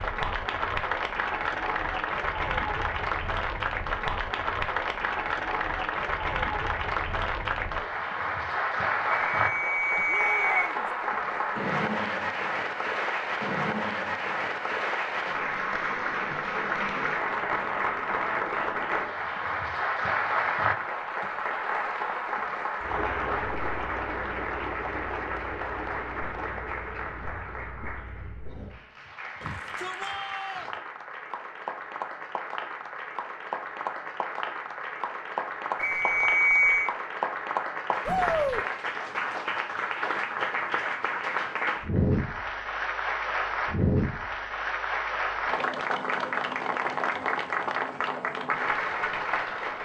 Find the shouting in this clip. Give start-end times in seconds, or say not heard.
10.1-10.9, 29.4-30.8, 38.0-38.6.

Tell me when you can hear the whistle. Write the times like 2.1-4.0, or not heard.
9.2-10.7, 35.8-36.9.